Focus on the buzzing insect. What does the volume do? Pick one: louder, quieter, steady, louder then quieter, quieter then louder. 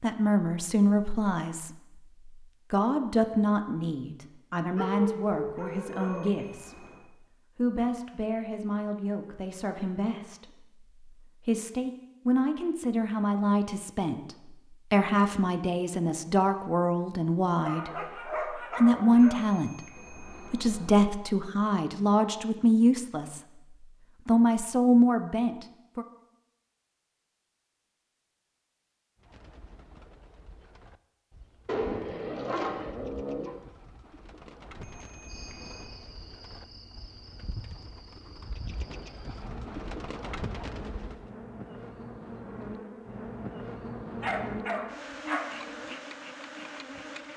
louder.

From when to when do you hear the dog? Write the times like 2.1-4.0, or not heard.
4.8-6.4, 17.6-19.4, 31.6-33.5, 44.2-45.5.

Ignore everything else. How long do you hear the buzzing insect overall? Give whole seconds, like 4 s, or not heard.
12 s.